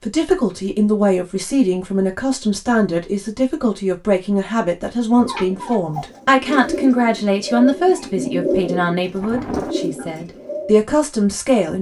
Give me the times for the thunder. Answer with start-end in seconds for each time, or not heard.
9.2-9.8.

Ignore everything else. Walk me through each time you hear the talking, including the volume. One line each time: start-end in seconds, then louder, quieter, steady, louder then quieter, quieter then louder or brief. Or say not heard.
0.0-11.7 steady.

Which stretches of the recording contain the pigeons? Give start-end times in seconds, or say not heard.
5.2-10.8.